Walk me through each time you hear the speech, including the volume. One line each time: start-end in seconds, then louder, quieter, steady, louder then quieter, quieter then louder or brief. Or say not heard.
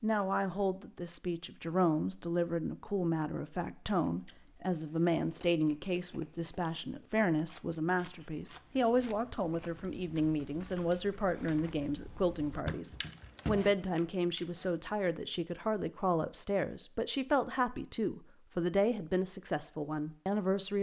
0.0-20.7 steady.